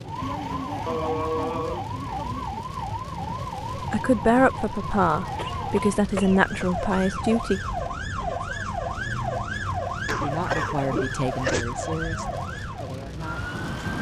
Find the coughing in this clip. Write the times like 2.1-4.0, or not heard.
0.8-1.9, 5.3-6.7, 10.1-11.7.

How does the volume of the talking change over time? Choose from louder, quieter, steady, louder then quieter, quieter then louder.
quieter.